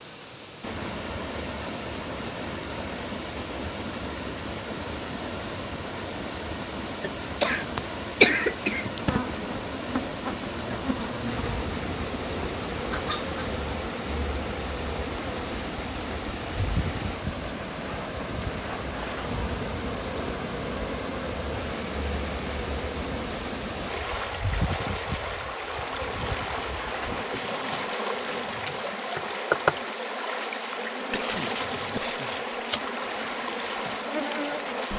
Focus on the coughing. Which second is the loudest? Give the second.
8 s.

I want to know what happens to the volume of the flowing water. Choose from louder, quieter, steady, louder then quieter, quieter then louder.
steady.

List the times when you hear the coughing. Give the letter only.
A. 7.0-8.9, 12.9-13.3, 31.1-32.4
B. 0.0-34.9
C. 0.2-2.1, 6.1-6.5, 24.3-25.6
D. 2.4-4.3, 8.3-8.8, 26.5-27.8
A.